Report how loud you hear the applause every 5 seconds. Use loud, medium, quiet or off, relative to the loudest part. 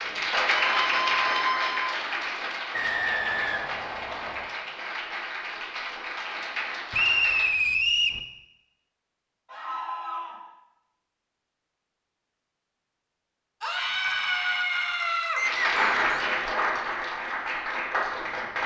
loud, medium, off, loud.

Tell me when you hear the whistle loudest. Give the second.
7 s.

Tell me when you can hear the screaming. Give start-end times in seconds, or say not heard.
0.8-1.9, 9.4-10.4, 13.6-15.4.